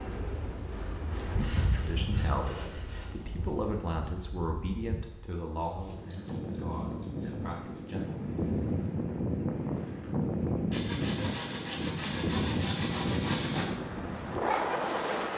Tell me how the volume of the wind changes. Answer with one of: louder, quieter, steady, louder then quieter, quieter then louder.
quieter then louder.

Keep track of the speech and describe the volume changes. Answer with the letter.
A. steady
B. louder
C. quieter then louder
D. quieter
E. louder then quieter
D.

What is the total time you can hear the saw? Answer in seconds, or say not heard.
7 s.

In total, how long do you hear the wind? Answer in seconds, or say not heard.
15 s.